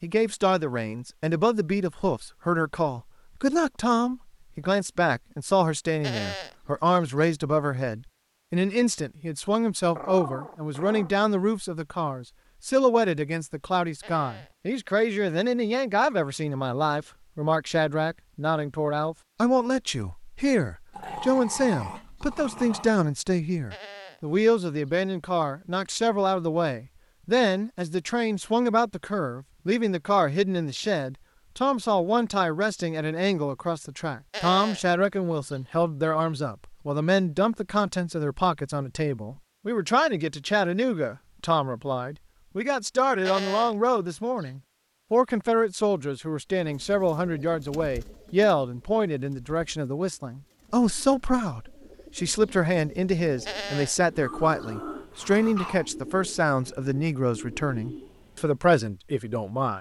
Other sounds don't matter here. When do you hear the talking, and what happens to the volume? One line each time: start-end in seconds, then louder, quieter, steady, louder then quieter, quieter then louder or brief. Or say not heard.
0.0-59.7 steady.